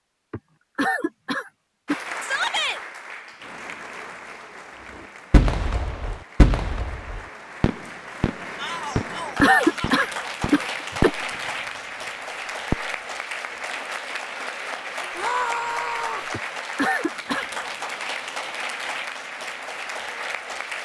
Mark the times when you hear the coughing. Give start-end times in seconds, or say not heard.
0.3-2.0, 8.9-11.1, 16.3-17.5.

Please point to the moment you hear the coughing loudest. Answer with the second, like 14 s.
10 s.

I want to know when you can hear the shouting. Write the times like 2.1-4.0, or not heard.
2.2-2.8, 8.6-10.0, 15.2-16.3.